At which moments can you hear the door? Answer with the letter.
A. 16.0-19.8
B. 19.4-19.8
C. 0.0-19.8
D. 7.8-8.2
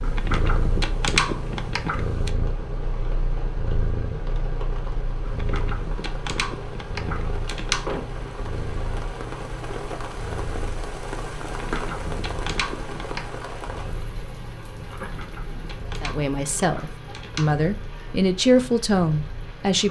D.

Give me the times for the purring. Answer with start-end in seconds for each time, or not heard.
0.0-19.8.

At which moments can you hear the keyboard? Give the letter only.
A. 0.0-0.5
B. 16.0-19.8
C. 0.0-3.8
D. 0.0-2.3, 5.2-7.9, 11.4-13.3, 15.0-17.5
D.